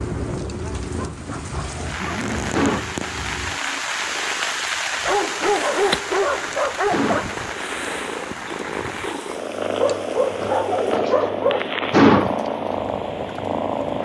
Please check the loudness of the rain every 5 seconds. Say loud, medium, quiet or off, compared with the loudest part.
loud, loud, medium.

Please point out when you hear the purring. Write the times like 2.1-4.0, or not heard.
0.0-14.0.